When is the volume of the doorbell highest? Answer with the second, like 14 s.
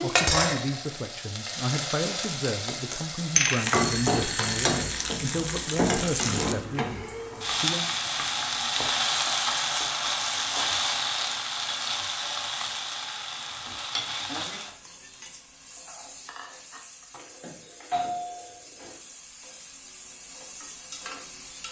18 s.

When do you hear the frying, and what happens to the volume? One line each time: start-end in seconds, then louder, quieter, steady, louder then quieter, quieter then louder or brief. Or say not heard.
0.0-21.6 quieter.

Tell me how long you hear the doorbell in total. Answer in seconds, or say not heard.
3 s.